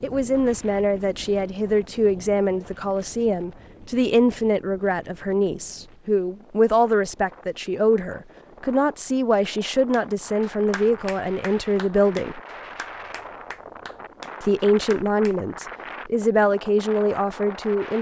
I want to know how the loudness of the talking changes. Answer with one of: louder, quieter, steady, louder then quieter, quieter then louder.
steady.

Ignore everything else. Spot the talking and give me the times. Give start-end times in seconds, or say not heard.
0.0-12.4, 14.4-17.9.